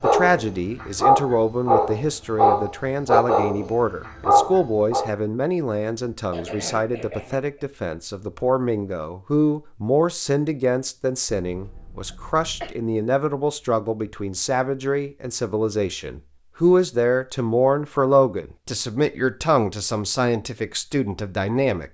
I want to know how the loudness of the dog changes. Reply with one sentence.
The loudness of the dog stays about the same.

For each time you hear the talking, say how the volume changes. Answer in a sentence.
You can hear the talking from 0.0 to 21.8 s, at a steady volume.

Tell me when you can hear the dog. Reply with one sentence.
The dog can be heard from 0.0 to 5.1 s.